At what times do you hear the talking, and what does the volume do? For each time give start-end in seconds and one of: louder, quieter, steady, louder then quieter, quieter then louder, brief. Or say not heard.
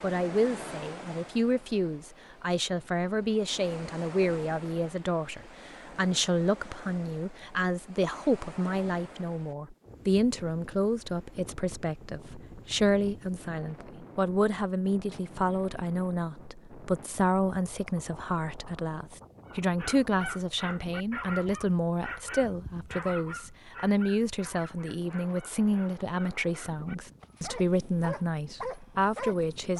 0.0-29.7 steady.